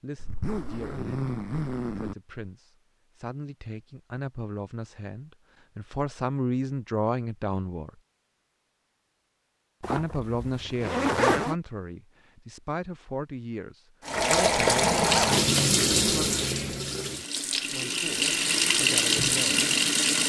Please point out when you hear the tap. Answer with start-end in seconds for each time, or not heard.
14.1-20.2.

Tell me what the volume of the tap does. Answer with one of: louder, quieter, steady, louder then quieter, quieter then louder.
quieter then louder.